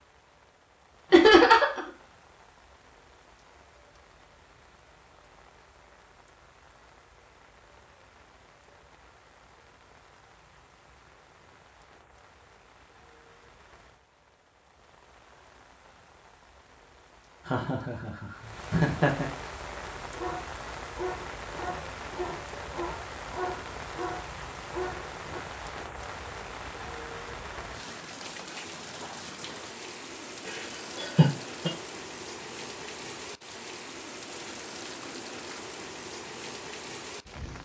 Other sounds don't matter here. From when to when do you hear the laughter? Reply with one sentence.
You can hear the laughter from 1.1 to 1.8 s, from 17.4 to 19.2 s and from 30.4 to 31.7 s.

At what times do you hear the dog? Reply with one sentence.
You can hear the dog from 20.0 to 25.4 s.